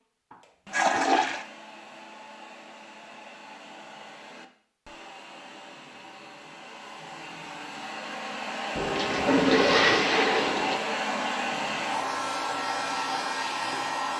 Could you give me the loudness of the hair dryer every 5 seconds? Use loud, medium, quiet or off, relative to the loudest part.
quiet, medium, loud.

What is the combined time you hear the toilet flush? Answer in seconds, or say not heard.
3 s.